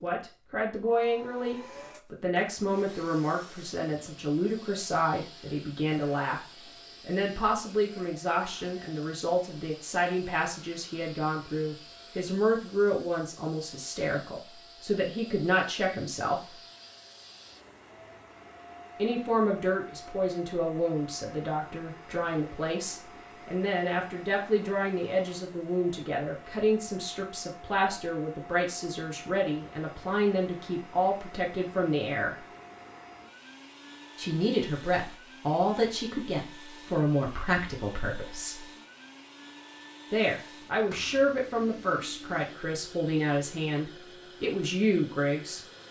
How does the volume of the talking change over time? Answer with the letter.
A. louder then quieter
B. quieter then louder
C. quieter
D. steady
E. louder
D.